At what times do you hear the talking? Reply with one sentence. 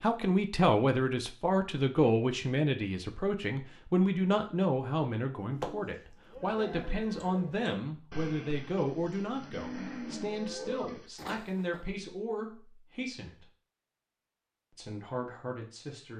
The talking can be heard from 0.0 to 13.4 s and from 14.7 to 16.1 s.